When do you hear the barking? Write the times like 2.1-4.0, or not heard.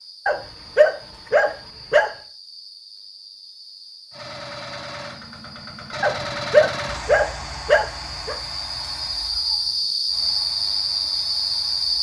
0.2-2.1, 6.0-8.3.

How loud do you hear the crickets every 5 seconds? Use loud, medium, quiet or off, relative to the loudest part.
quiet, medium, loud.